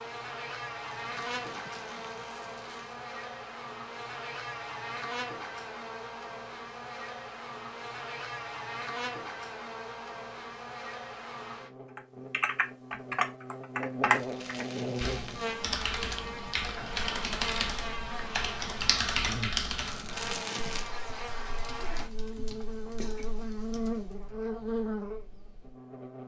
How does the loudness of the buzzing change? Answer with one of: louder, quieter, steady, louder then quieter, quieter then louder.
steady.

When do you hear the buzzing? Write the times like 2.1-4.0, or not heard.
0.0-26.2.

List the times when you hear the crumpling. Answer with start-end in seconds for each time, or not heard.
1.0-3.0, 14.1-15.6, 19.9-20.9.